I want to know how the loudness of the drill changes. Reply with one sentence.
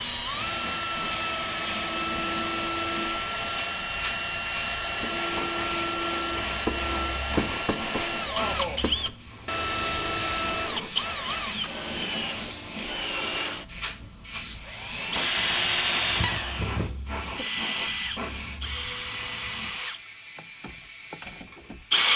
The loudness of the drill stays about the same.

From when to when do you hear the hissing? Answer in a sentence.
You can hear the hissing from 0.0 to 22.1 s.